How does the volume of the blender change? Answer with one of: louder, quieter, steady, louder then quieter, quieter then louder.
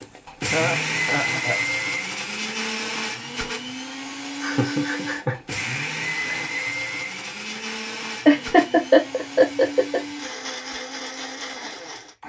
quieter.